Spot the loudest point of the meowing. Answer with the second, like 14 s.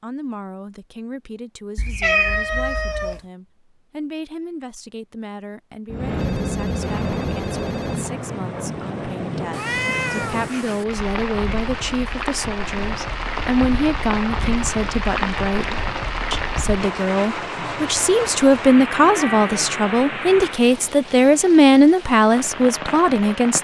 2 s.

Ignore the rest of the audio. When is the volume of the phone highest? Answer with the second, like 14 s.
6 s.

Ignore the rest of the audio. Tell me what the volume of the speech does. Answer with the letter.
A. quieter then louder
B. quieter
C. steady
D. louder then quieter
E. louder
E.